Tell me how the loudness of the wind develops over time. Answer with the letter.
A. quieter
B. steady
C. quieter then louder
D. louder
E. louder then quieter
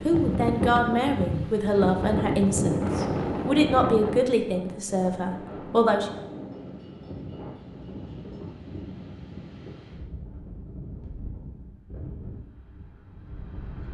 A.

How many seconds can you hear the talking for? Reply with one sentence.
You can hear the talking for 6 seconds altogether.